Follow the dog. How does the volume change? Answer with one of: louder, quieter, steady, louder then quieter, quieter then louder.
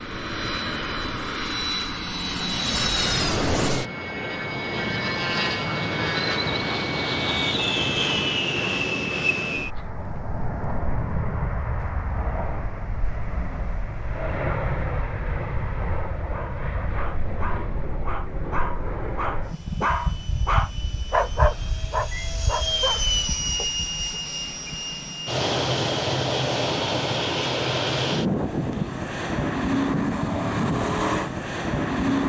louder then quieter.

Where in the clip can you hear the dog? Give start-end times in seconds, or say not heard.
16.3-24.2.